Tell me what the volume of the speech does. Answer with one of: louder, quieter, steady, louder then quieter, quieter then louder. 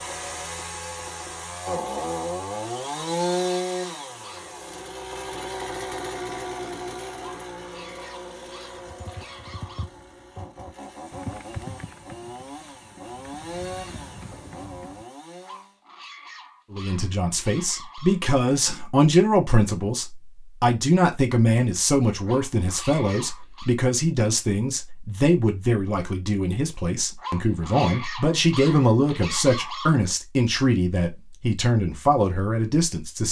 steady.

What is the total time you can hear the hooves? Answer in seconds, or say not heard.
6 s.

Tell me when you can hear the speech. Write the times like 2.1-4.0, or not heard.
16.7-33.2.